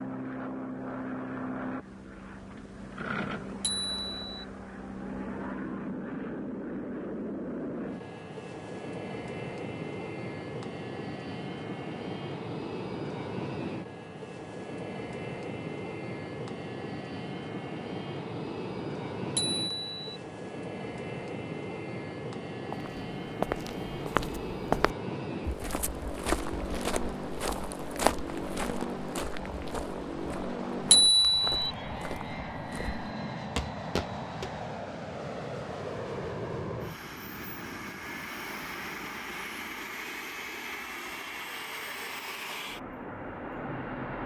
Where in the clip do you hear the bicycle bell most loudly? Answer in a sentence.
The loudest moment of the bicycle bell is at 31 seconds.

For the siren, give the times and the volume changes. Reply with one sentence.
You can't hear the siren here.